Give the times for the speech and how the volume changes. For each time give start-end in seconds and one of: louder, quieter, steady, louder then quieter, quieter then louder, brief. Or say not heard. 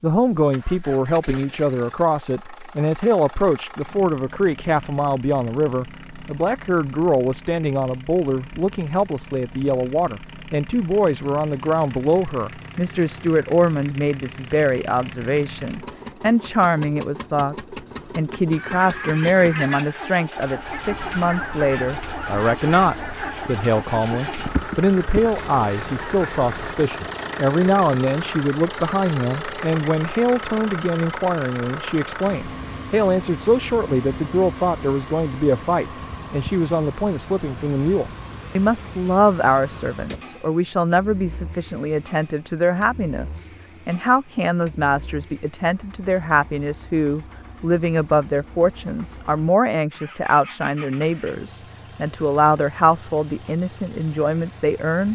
0.0-55.1 steady.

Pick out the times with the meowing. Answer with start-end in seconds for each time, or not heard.
not heard.